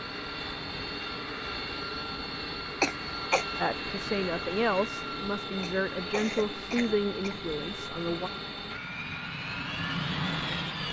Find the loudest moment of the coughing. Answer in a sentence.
The volume of the coughing peaks at 3 seconds.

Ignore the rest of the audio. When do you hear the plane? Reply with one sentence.
The plane can be heard from 0.0 to 10.8 s.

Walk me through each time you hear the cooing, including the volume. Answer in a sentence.
You can't hear the cooing here.